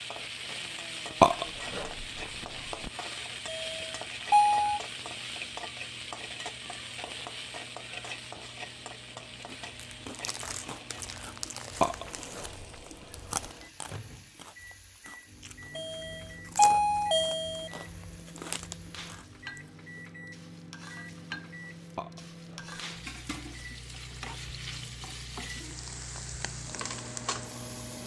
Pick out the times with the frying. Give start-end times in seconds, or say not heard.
0.0-28.0.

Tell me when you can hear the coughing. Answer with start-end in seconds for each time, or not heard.
not heard.